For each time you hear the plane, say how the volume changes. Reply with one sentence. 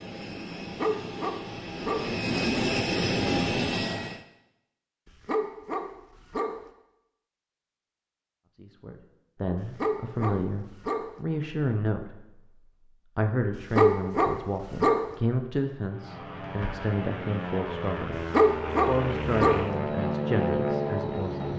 You can hear the plane from 0.0 to 4.2 s, getting louder; and from 15.8 to 21.5 s, getting louder.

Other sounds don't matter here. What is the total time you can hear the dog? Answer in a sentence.
You can hear the dog for 7 seconds altogether.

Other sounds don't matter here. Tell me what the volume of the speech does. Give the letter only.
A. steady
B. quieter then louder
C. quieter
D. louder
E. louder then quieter
A.